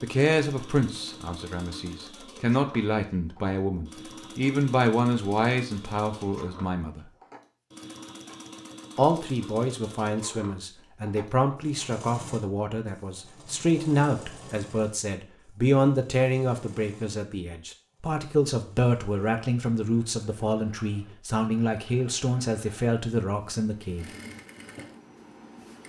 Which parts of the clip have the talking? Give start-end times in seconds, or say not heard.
0.0-7.1, 8.9-24.1.